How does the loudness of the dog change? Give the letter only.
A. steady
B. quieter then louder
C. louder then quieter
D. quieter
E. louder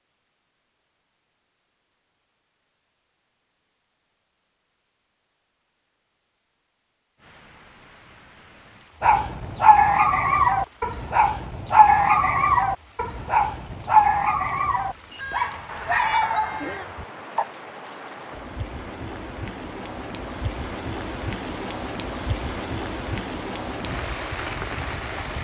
D.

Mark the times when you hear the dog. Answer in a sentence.
The dog can be heard from 9.0 to 17.4 s.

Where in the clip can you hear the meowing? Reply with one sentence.
The meowing can be heard from 15.1 to 16.9 s.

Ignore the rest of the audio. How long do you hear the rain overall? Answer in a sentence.
The rain can be heard for 18 seconds in total.